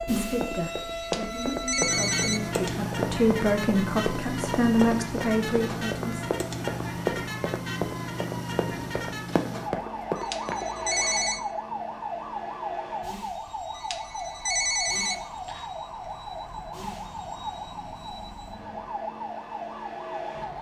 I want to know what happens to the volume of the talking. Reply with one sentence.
The loudness of the talking goes up.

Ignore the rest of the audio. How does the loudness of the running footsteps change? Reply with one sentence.
The volume of the running footsteps stays about the same.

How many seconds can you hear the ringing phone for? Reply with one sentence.
The ringing phone can be heard for 5 seconds in total.